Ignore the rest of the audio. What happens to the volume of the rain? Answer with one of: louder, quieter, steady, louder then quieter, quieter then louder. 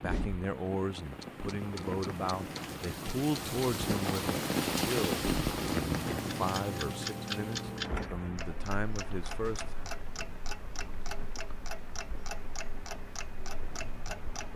louder then quieter.